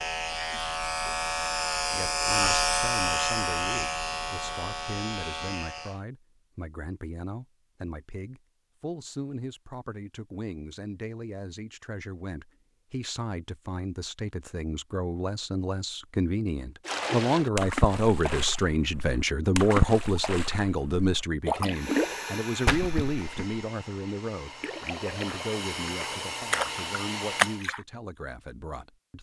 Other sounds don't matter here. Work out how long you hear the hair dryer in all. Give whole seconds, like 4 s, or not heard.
6 s.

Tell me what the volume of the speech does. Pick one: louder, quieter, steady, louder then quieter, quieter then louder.
louder then quieter.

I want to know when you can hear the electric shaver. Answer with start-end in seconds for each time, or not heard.
0.0-6.0.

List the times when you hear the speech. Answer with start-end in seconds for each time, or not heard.
1.9-29.1.